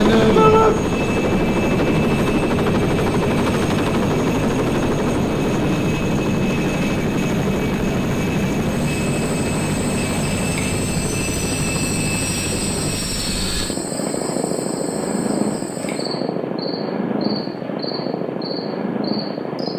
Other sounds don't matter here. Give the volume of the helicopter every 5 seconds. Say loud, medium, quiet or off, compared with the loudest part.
loud, loud, medium, medium.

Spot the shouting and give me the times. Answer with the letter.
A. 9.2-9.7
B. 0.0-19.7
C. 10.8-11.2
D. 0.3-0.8
D.